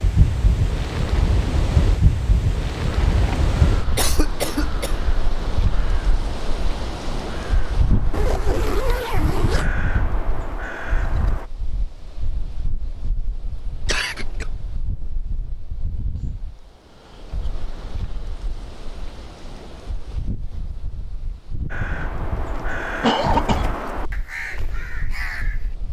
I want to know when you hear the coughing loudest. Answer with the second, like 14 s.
23 s.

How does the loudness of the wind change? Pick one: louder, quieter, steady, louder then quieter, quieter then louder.
quieter.